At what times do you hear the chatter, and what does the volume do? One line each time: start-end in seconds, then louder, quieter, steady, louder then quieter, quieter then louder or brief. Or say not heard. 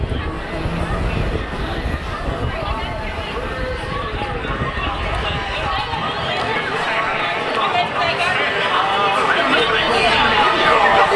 0.0-11.1 louder.